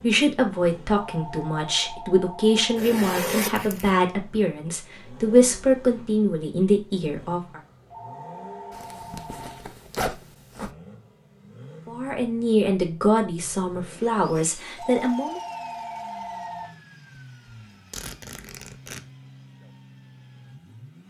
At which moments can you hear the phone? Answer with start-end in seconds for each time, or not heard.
1.0-2.8, 7.9-9.7, 14.8-16.8.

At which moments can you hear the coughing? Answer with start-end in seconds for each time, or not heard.
not heard.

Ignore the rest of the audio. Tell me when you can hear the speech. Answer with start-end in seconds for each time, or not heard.
0.0-7.6, 11.8-15.4.